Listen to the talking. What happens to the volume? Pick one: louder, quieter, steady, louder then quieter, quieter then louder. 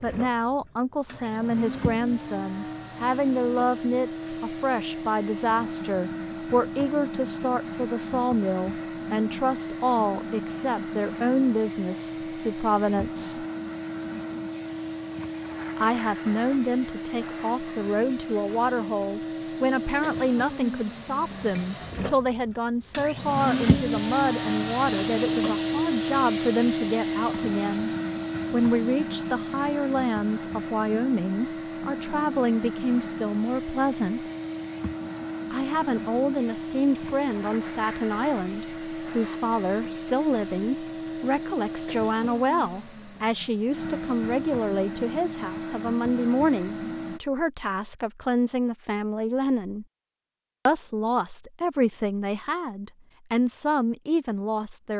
steady.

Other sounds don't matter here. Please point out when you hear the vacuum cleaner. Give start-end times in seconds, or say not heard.
0.0-47.2.